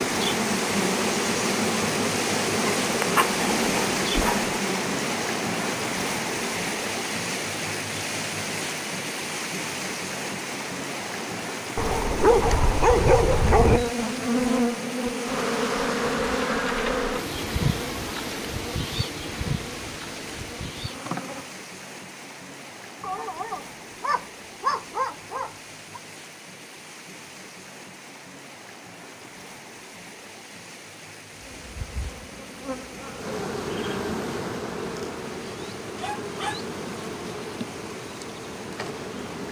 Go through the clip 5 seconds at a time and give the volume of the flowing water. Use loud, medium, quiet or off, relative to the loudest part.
loud, loud, medium, medium, quiet, quiet, quiet, quiet.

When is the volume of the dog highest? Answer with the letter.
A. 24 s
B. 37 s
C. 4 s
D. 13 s
D.